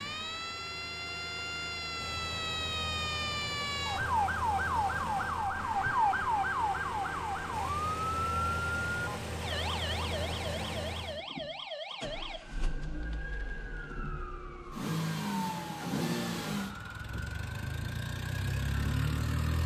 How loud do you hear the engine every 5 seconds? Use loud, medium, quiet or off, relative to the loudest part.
medium, medium, medium, loud.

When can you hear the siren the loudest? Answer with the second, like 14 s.
6 s.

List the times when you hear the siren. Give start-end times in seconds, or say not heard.
0.0-19.6.